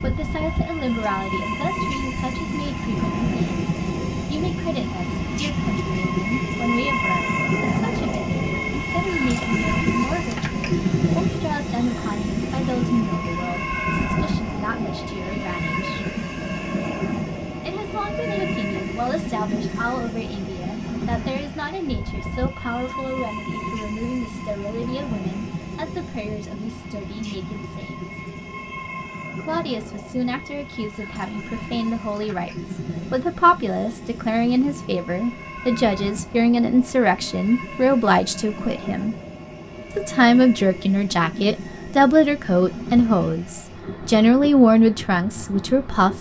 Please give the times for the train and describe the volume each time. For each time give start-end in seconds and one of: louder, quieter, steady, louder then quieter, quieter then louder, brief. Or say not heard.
0.0-46.1 quieter.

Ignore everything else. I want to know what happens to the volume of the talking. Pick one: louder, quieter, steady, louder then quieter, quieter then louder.
louder.